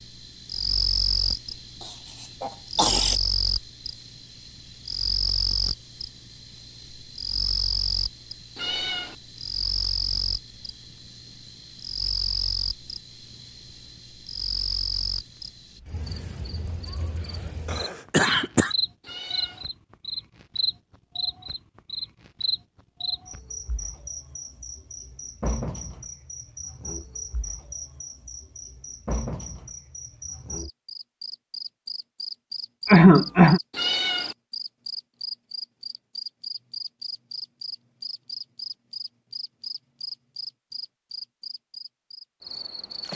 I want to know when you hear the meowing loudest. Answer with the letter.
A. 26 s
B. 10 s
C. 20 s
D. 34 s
D.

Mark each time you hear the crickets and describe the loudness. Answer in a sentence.
The crickets can be heard from 0.0 to 43.1 s, getting quieter.